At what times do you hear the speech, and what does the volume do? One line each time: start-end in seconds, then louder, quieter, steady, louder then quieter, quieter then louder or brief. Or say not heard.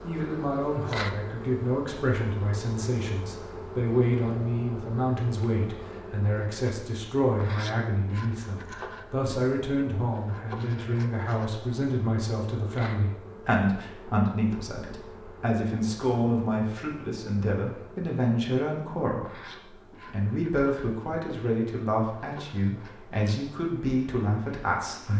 0.0-25.1 steady.